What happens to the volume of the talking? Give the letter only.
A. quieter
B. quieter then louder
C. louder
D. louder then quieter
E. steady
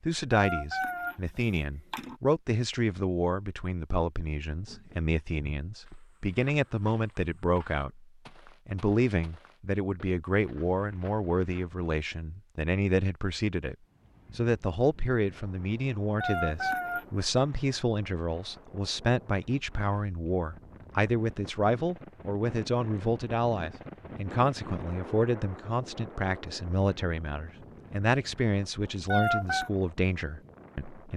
E.